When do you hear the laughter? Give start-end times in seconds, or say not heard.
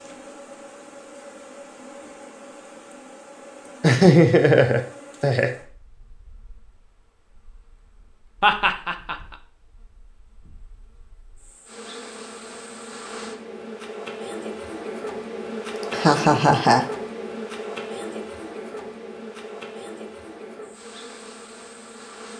3.8-5.5, 8.4-9.2, 15.9-16.9.